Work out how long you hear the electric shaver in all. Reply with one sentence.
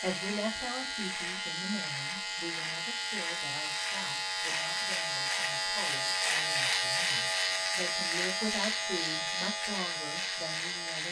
You can hear the electric shaver for 11 seconds altogether.